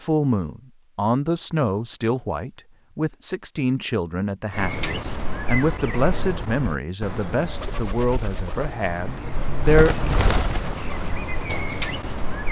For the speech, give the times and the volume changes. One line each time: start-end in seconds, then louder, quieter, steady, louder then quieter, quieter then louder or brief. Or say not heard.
0.0-10.2 steady.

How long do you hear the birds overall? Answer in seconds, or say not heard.
8 s.